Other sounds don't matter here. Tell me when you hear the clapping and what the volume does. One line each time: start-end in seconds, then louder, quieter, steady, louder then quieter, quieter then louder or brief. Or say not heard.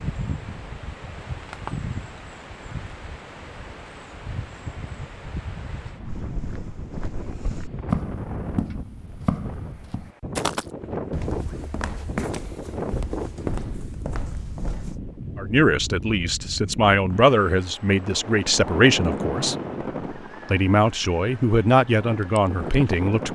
not heard.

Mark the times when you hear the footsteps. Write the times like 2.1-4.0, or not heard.
6.0-15.0.